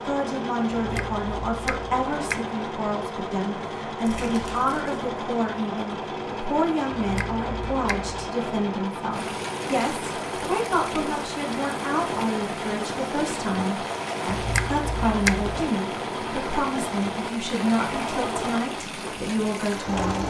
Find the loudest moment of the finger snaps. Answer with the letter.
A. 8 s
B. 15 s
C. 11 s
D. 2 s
B.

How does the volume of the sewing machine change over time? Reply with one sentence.
The loudness of the sewing machine stays about the same.